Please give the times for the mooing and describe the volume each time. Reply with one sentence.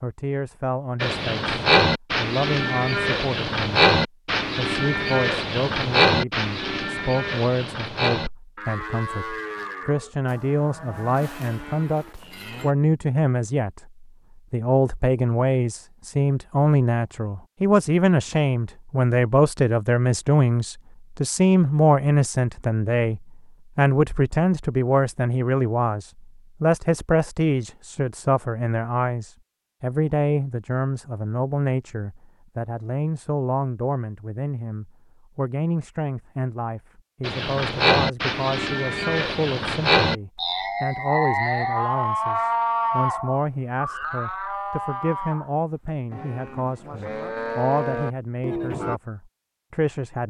You can hear the mooing from 1.0 to 12.8 s, getting quieter; and from 37.2 to 49.0 s, getting quieter.